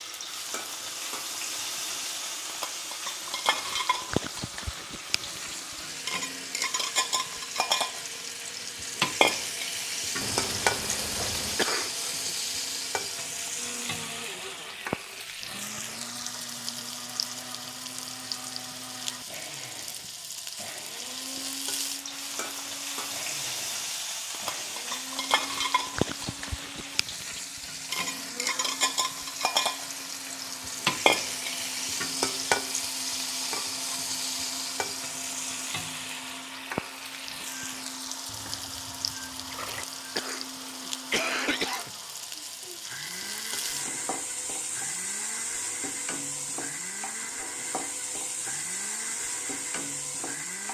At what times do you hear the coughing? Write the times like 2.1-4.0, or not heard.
11.6-12.3, 40.1-41.9.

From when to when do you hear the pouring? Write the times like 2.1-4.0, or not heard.
10.2-11.6, 38.2-39.9.